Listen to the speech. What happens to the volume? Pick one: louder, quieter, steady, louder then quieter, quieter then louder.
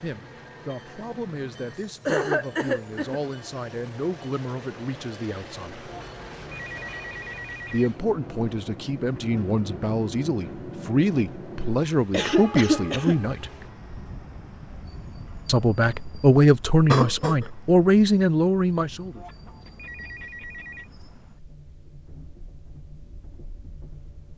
louder.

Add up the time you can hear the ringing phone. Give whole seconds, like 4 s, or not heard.
4 s.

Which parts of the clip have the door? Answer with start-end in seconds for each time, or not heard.
not heard.